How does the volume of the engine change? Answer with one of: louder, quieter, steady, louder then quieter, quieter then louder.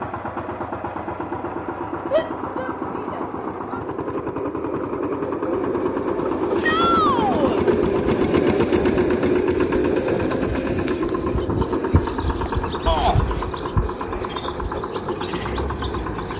louder then quieter.